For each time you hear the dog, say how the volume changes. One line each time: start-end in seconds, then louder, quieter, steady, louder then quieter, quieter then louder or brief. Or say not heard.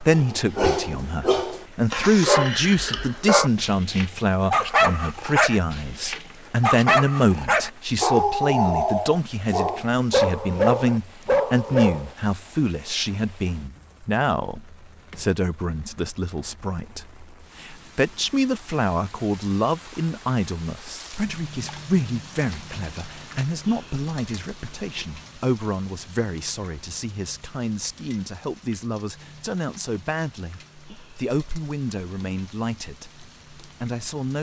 0.1-12.1 steady.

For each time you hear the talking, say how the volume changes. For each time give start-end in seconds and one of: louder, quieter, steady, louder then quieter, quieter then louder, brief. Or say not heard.
0.0-34.3 quieter.